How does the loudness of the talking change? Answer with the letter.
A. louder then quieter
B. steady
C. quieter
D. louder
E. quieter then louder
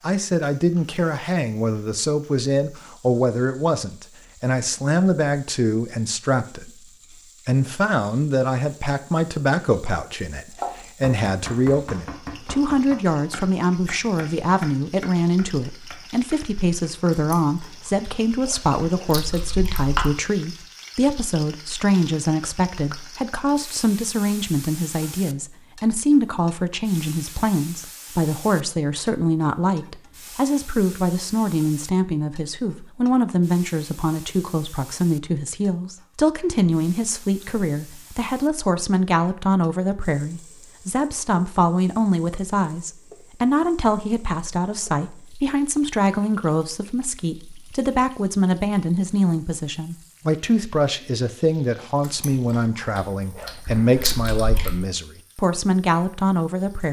B.